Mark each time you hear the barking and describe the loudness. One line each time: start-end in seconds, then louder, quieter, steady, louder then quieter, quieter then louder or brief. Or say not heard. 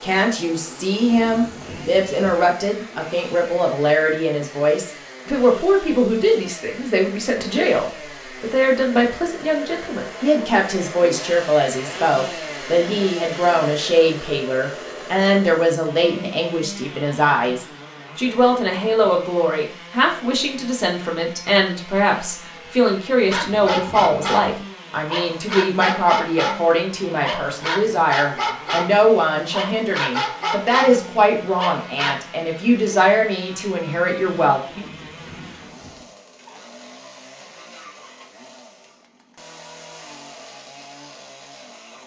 23.3-32.1 steady.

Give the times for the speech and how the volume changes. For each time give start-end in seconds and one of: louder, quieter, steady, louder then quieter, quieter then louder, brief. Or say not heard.
0.0-34.9 steady.